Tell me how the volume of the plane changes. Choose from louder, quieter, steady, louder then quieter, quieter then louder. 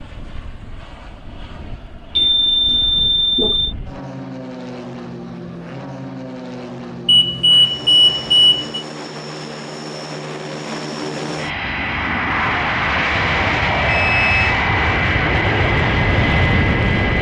louder.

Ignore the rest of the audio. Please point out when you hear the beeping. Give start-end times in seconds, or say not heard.
2.1-3.8, 7.0-8.8, 13.8-14.6.